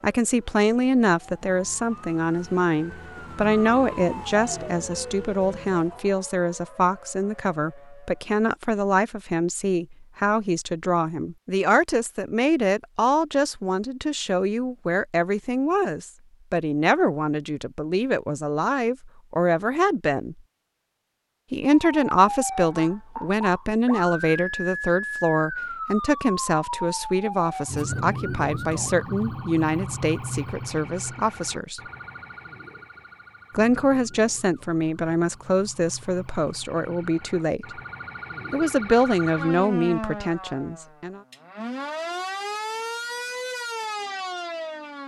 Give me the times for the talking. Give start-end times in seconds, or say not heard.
0.0-20.4, 21.5-31.8, 33.5-37.8, 38.5-41.2.